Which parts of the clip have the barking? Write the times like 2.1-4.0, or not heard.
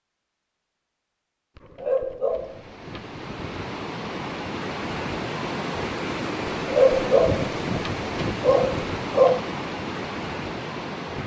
1.6-3.1, 6.6-9.4.